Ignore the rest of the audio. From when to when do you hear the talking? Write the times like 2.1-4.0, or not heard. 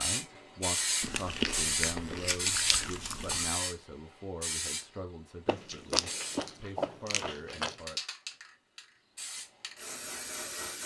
0.0-8.0.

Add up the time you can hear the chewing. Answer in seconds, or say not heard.
5 s.